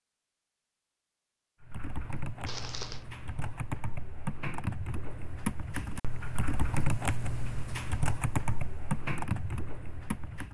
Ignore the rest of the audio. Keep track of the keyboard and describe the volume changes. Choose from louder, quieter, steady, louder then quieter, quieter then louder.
louder.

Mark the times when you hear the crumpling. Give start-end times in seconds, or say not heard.
2.5-3.0.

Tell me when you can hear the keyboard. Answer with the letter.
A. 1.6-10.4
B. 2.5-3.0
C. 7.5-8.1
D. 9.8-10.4
A.